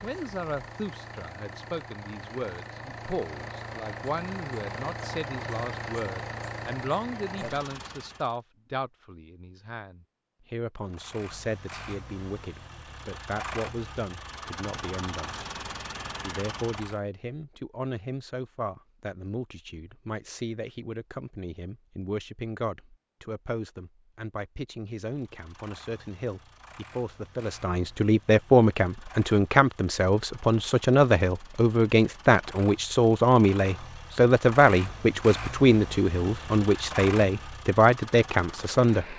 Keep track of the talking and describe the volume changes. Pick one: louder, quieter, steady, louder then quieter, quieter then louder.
louder.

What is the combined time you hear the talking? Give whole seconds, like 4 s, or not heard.
38 s.